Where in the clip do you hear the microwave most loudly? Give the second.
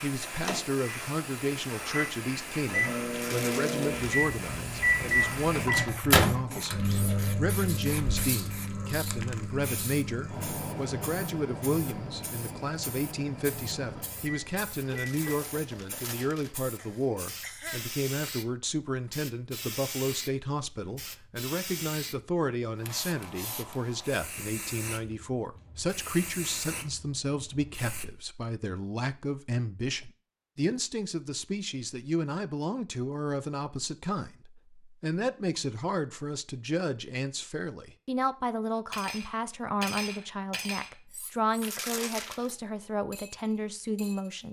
6 s.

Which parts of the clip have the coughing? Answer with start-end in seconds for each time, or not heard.
16.8-17.9.